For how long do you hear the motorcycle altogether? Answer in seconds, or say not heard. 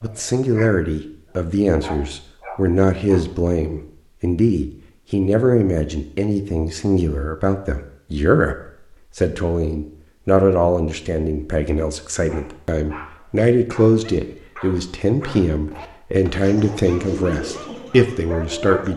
not heard.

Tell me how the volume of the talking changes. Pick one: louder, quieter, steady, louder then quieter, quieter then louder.
steady.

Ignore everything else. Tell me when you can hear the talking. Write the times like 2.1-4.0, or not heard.
0.0-18.9.